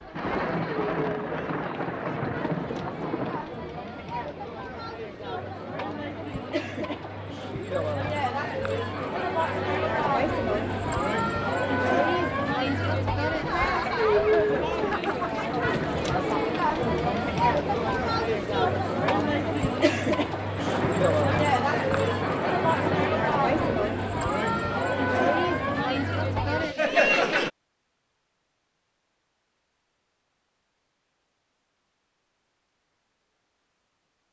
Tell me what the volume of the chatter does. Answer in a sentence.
The loudness of the chatter goes up.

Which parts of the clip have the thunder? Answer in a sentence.
You can hear the thunder from 0.1 to 3.5 s and from 20.6 to 23.9 s.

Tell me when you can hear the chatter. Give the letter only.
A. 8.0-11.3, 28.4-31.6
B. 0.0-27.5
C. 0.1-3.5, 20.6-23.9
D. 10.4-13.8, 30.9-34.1
B.